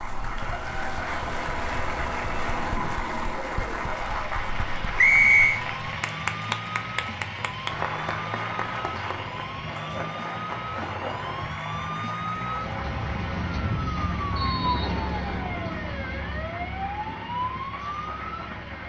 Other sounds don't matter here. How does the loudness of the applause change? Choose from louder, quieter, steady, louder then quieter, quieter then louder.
quieter.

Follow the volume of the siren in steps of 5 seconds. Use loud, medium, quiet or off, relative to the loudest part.
medium, medium, loud, loud.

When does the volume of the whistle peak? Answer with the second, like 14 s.
5 s.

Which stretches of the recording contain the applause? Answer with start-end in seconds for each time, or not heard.
0.0-18.8.